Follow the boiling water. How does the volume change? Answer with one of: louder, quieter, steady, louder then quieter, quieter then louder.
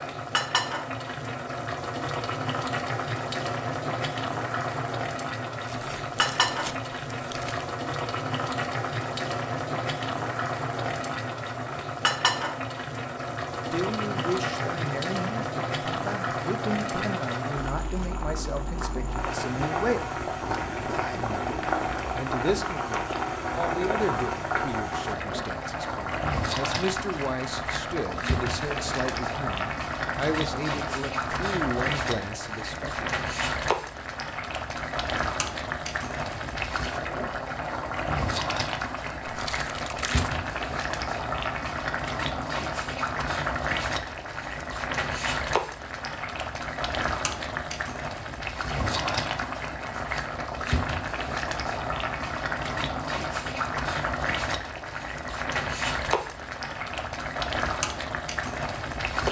steady.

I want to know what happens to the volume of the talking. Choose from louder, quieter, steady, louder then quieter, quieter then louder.
steady.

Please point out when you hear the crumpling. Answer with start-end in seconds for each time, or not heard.
5.7-7.7, 39.2-40.3.